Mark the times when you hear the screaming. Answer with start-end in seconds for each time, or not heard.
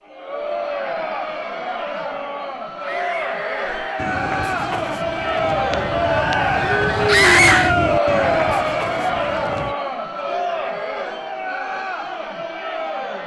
2.8-4.2, 7.0-7.8.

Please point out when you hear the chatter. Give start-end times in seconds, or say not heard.
0.0-13.2.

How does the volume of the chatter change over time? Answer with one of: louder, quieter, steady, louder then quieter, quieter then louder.
louder then quieter.